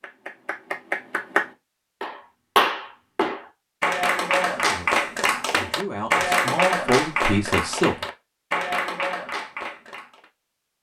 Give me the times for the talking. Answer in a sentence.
The talking can be heard from 4.5 to 8.1 s.